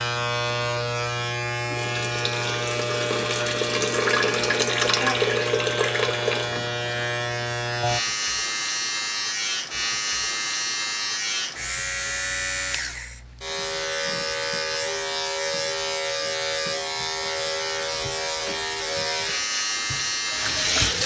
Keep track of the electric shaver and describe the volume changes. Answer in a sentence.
The volume of the electric shaver stays about the same.